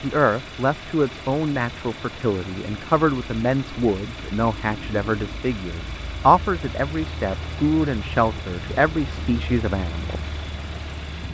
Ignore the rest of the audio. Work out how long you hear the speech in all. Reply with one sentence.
The speech can be heard for 10 seconds in total.